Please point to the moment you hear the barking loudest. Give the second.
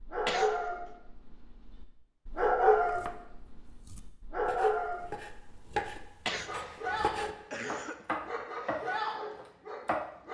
3 s.